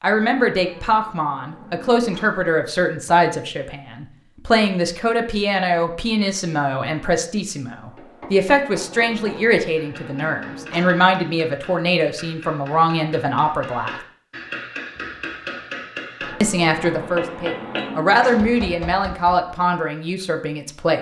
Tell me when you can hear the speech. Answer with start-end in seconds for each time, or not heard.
0.0-13.9, 16.4-20.9.